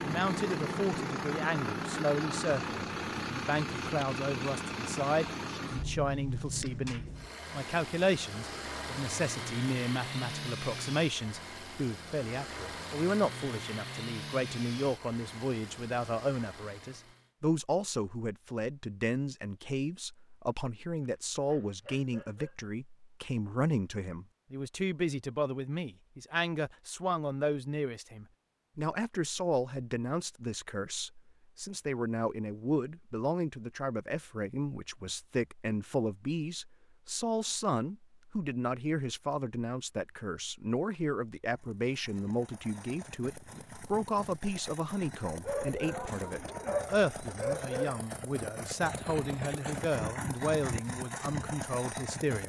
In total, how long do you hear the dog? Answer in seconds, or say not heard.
4 s.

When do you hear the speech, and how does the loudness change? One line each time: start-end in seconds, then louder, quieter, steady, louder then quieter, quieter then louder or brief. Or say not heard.
0.0-52.4 steady.